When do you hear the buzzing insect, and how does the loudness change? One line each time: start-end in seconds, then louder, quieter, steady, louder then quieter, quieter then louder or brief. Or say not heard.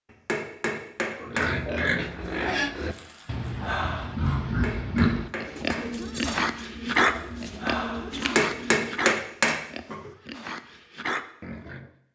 not heard.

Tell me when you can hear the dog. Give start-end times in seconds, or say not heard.
2.9-4.3, 7.1-8.3.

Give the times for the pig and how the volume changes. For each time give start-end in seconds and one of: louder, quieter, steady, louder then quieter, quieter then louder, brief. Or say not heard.
1.2-11.9 quieter.